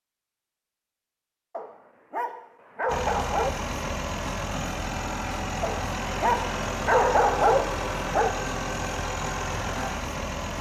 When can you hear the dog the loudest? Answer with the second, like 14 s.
7 s.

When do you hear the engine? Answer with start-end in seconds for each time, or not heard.
2.9-10.5.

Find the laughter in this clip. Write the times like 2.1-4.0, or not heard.
not heard.